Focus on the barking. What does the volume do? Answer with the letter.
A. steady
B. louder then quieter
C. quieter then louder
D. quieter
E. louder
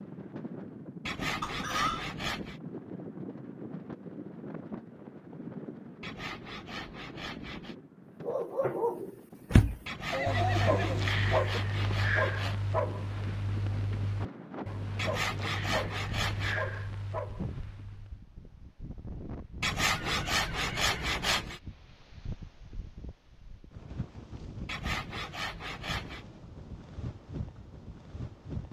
D.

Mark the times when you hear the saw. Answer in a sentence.
The saw can be heard from 1.1 to 2.6 s, from 6.0 to 7.8 s, from 9.8 to 12.6 s, from 14.9 to 16.6 s, from 19.6 to 21.6 s and from 24.6 to 26.2 s.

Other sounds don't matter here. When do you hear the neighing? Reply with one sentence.
You can hear the neighing from 1.4 to 2.0 s, from 10.1 to 11.6 s and from 19.9 to 21.4 s.